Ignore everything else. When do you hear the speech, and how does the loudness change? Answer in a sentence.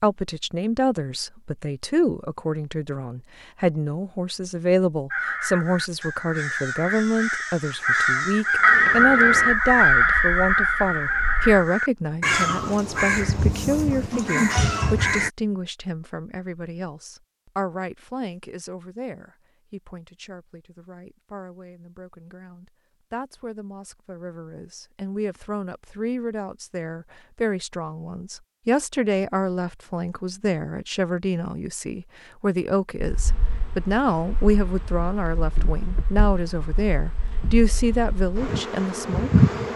You can hear the speech from 0.0 to 39.4 s, getting quieter then louder.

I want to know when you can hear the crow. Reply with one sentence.
The crow can be heard from 5.1 to 15.3 s.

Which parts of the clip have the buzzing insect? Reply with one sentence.
The buzzing insect can be heard from 8.6 to 11.6 s and from 33.0 to 39.7 s.